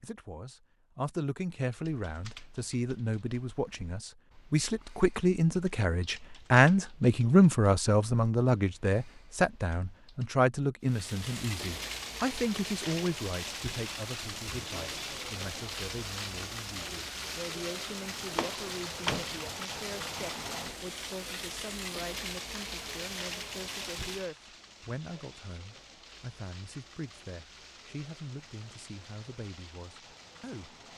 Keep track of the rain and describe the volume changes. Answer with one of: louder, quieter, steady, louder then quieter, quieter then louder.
quieter.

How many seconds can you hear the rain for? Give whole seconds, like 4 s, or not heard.
20 s.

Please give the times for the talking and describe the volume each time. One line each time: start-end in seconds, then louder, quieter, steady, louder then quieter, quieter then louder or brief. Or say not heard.
0.0-30.8 louder then quieter.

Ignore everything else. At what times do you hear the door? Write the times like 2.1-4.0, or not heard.
18.4-19.5.